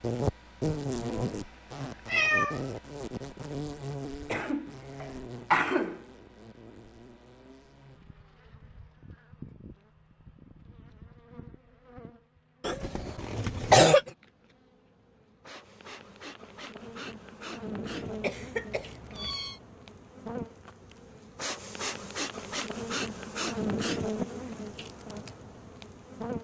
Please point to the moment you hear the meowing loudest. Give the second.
2 s.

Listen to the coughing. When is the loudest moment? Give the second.
14 s.